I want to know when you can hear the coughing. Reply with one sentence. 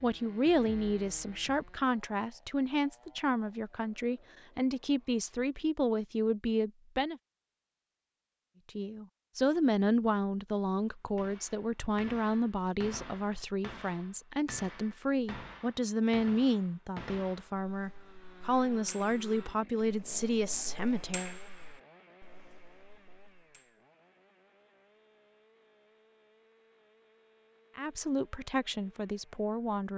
The coughing can't be heard in this clip.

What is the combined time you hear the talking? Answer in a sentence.
The talking can be heard for 22 seconds in total.